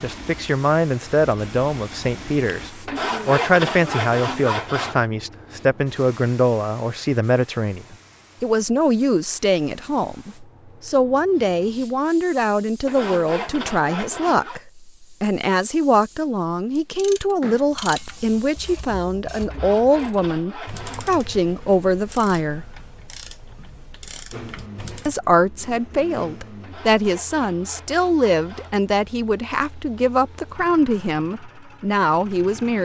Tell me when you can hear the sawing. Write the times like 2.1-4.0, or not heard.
2.9-5.0, 12.8-14.6, 19.5-21.1, 26.6-28.8.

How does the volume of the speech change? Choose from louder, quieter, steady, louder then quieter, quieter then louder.
steady.